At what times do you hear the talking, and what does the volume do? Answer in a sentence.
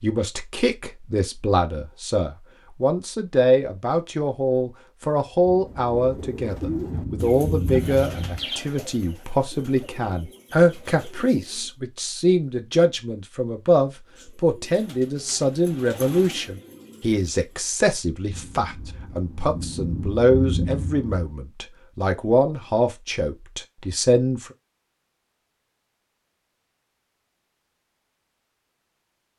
You can hear the talking from 0.0 to 24.5 s, at a steady volume.